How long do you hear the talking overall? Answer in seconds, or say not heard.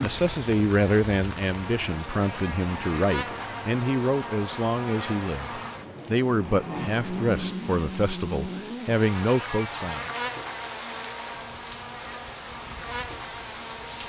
10 s.